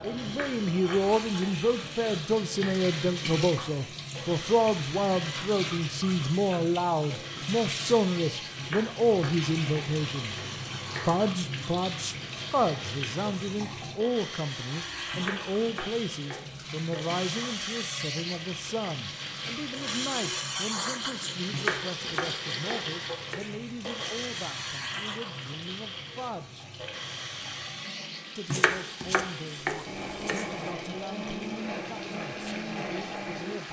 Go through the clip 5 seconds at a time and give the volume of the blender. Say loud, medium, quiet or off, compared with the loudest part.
medium, medium, medium, loud, loud, medium, loud.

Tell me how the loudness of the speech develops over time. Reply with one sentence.
The volume of the speech goes down.